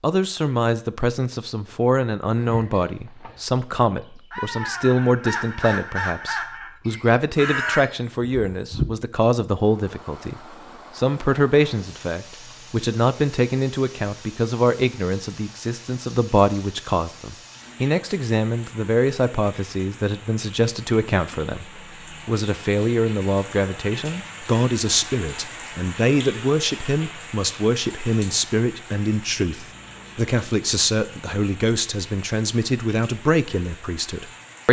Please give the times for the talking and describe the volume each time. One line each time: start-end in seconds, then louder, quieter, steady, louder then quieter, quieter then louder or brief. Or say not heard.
0.0-34.6 steady.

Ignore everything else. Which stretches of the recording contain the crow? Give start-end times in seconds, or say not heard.
2.4-8.8.